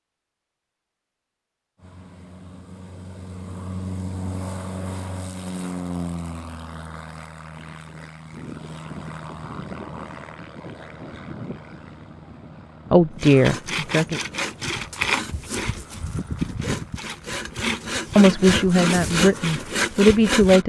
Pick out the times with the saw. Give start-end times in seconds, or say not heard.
13.2-20.6.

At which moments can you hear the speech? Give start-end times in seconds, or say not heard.
12.9-14.2, 18.1-20.6.